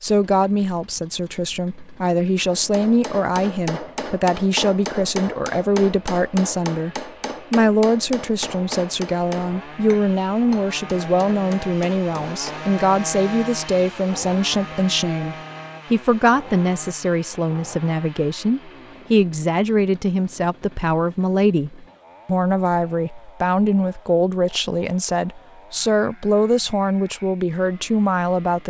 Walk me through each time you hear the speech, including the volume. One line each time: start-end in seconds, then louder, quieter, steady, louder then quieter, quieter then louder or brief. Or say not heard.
0.0-28.6 steady.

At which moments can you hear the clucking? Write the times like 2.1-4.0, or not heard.
not heard.